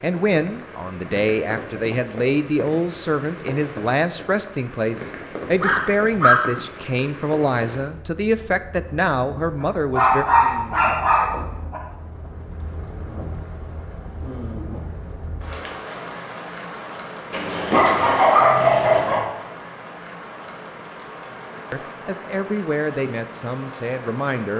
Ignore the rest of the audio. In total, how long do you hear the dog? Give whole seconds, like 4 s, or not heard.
5 s.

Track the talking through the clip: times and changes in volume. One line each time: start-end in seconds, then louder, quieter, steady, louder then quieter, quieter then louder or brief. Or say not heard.
0.0-10.2 steady
21.7-24.5 brief.